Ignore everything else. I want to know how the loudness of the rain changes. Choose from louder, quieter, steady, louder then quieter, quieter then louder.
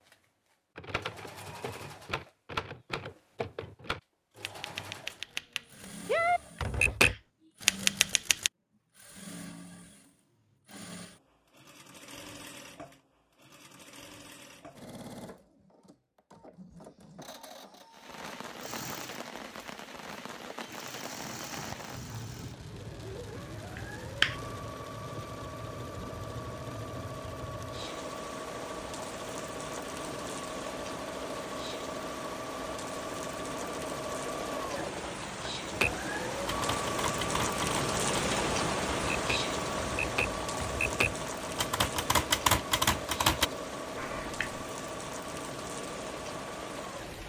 louder then quieter.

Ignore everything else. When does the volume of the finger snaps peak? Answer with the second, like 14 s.
24 s.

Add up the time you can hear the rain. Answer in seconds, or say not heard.
29 s.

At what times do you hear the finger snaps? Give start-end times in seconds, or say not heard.
6.5-7.2, 23.8-24.4, 44.0-44.6.